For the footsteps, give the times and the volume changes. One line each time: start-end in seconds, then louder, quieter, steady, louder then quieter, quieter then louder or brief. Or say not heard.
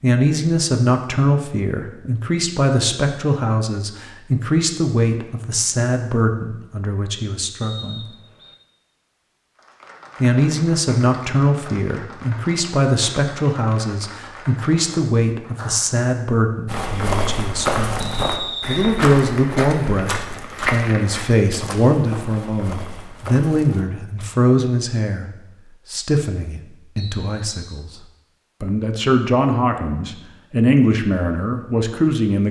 16.6-23.9 quieter.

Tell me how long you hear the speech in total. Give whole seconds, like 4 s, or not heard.
29 s.